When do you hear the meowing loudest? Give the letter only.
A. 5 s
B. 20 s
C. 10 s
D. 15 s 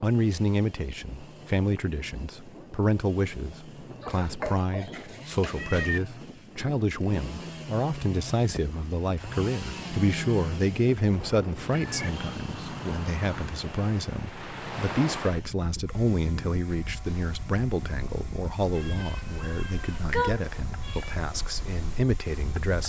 B.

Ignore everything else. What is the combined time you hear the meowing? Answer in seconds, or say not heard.
5 s.